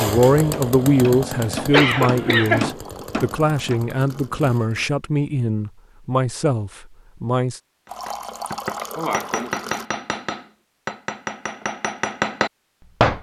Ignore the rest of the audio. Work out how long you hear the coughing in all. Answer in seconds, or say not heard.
2 s.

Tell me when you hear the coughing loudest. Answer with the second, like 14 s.
2 s.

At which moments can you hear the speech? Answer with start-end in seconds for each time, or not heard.
0.0-7.6.